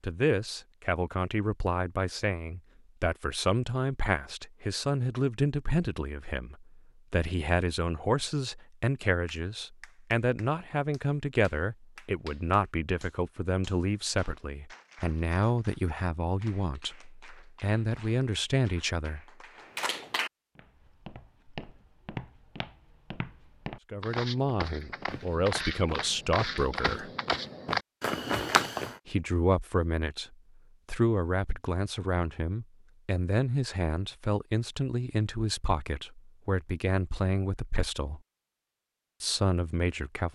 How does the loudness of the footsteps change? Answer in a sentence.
The volume of the footsteps goes up.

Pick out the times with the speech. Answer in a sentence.
The speech can be heard from 0.0 to 19.2 s, from 23.9 to 27.1 s, from 29.1 to 38.2 s and from 39.2 to 40.3 s.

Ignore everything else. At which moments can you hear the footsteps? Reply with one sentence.
You can hear the footsteps from 20.6 to 28.9 s.